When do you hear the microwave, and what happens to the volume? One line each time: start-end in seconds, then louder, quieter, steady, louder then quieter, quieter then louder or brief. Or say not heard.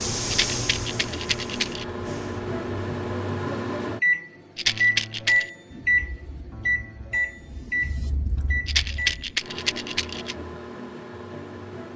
0.0-11.9 louder then quieter.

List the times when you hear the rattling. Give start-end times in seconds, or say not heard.
0.3-1.9, 4.5-5.5, 8.7-10.3.